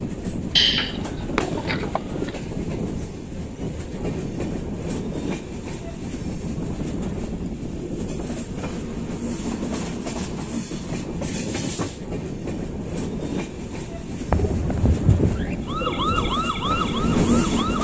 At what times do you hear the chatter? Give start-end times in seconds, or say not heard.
not heard.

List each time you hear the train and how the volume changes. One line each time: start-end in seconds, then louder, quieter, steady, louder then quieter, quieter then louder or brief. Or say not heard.
0.0-17.7 steady.